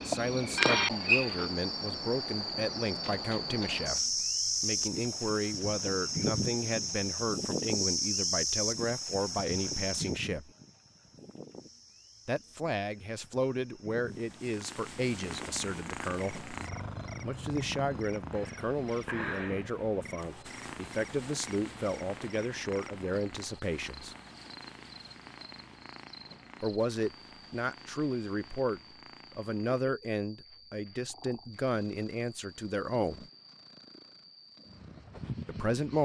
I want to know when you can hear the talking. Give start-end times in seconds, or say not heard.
0.0-10.5, 12.2-16.5, 17.2-24.1, 26.6-33.2, 35.5-36.0.